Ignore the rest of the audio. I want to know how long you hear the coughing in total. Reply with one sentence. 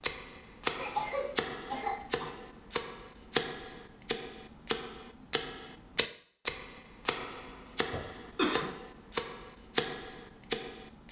You can hear the coughing for 3 seconds altogether.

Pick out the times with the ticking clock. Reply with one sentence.
You can hear the ticking clock from 0.0 to 11.0 s.